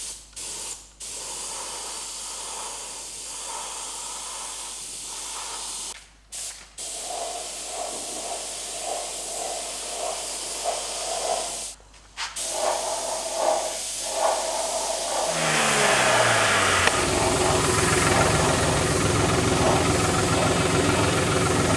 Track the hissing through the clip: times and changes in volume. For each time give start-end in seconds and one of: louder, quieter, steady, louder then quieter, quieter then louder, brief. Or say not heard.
0.0-21.7 louder.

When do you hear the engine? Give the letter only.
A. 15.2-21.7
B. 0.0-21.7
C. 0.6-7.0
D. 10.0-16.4
A.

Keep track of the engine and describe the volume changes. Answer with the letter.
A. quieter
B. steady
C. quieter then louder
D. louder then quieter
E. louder
B.